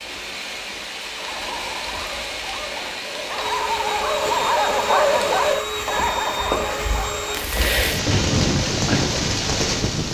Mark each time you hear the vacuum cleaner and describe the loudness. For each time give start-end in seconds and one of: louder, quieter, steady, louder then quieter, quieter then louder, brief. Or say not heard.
3.3-7.5 steady.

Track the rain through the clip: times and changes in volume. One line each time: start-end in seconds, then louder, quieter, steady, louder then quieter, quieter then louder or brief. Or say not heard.
0.0-10.0 louder.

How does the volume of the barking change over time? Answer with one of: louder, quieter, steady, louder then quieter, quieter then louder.
louder then quieter.